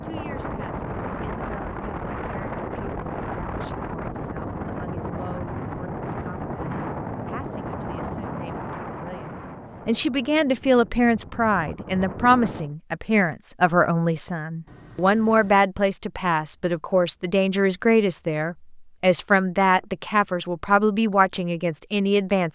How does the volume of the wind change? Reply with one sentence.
The loudness of the wind goes down.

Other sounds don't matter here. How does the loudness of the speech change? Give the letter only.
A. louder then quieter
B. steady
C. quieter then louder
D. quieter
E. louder
E.